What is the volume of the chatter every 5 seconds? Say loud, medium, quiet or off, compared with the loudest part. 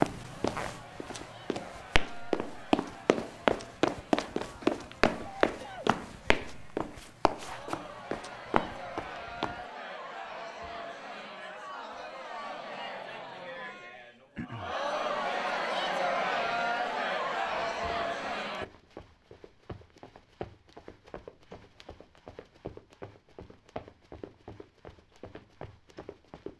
quiet, quiet, medium, loud, off, off.